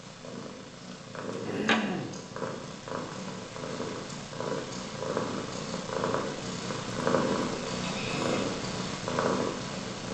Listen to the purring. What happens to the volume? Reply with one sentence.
The loudness of the purring goes up.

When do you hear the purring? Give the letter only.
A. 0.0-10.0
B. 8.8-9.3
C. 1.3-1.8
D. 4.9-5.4
A.